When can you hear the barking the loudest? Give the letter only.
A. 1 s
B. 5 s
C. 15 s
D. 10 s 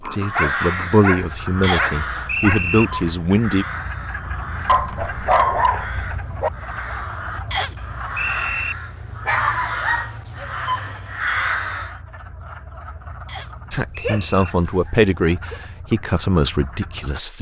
B.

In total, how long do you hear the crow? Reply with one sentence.
You can hear the crow for 12 seconds altogether.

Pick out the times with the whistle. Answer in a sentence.
The whistle can be heard from 1.6 to 2.9 s, from 7.5 to 8.8 s and from 13.2 to 14.4 s.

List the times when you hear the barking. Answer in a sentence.
The barking can be heard from 0.3 to 2.6 s, from 4.7 to 6.5 s, from 9.2 to 10.4 s and from 14.0 to 15.6 s.